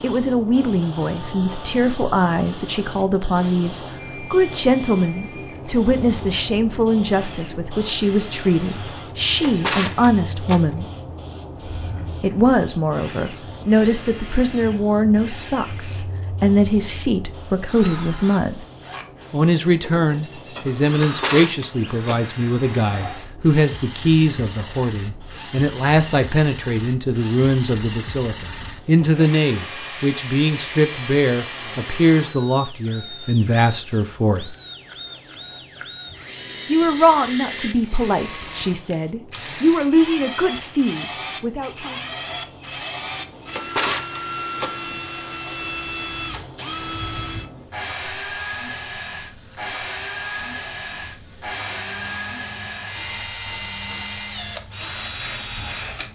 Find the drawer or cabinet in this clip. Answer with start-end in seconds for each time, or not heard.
9.1-10.9, 20.9-22.2, 43.2-45.0.